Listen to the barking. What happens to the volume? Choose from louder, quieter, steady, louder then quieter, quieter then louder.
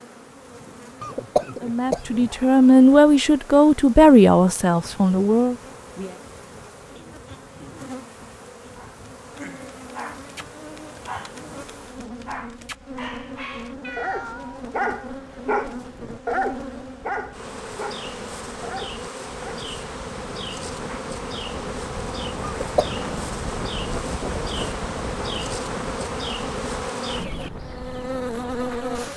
louder then quieter.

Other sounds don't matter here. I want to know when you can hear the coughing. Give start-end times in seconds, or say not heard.
1.0-2.3, 22.4-23.1.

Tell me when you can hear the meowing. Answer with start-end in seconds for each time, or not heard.
13.8-14.7.